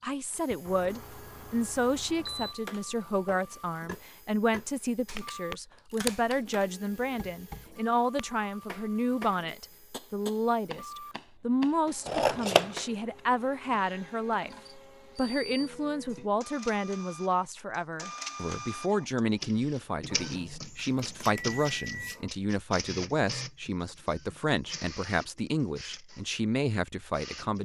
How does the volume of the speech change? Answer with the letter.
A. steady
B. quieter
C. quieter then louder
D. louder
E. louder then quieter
A.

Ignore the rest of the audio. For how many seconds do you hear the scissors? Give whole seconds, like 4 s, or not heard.
4 s.